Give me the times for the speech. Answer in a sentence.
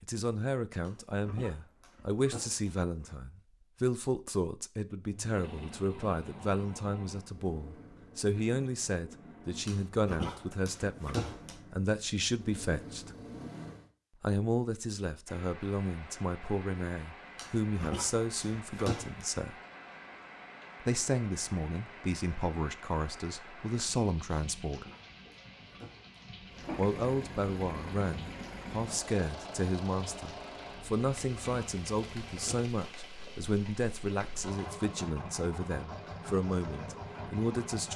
You can hear the speech from 0.0 to 13.1 s, from 14.2 to 19.6 s, from 20.8 to 24.9 s and from 26.8 to 37.9 s.